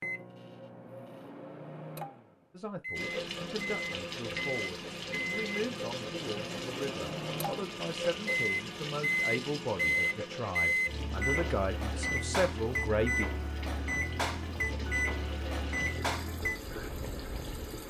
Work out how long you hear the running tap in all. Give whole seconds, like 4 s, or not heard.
15 s.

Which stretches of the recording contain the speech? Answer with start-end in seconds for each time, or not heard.
2.5-13.2.